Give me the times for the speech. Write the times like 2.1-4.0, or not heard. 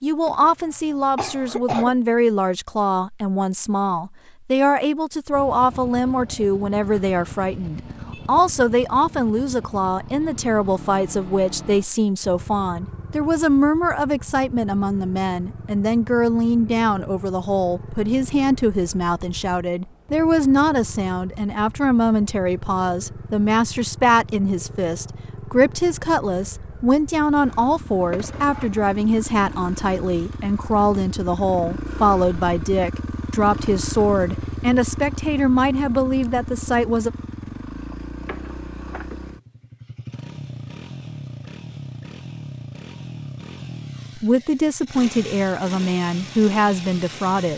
0.0-37.1, 44.1-47.5.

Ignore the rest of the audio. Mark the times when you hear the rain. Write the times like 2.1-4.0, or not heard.
not heard.